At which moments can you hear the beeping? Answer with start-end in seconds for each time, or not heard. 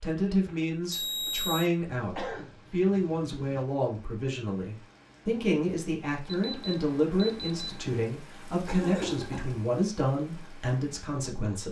0.9-1.7, 6.2-8.2.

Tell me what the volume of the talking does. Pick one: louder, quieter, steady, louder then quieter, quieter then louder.
steady.